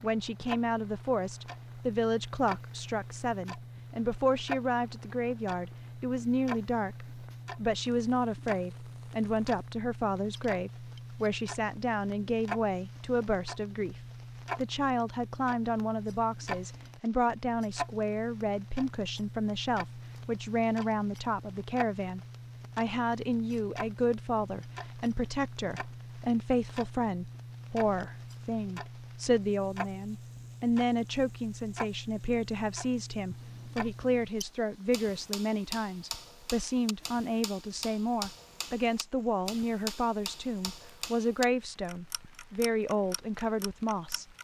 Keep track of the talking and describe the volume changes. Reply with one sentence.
The volume of the talking stays about the same.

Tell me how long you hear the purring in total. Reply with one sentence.
You can't hear the purring here.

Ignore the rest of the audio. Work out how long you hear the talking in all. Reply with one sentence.
You can hear the talking for 44 seconds altogether.